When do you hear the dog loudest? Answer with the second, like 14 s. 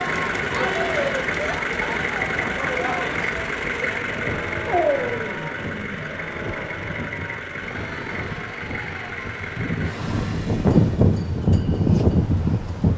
5 s.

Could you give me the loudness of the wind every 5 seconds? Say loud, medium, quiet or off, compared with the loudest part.
quiet, quiet, loud.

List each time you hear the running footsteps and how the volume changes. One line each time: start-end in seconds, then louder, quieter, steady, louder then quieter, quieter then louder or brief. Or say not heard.
not heard.